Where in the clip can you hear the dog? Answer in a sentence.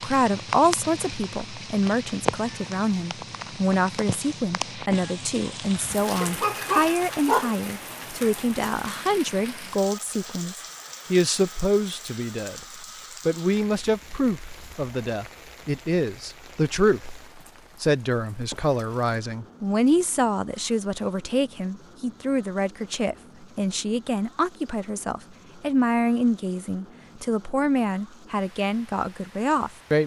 The dog can be heard from 5.8 to 7.5 s.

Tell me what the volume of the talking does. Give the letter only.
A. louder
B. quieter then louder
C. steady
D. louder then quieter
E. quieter
C.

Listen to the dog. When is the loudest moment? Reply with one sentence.
The loudest moment of the dog is at 7 seconds.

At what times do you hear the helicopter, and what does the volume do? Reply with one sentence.
The helicopter can't be heard in this clip.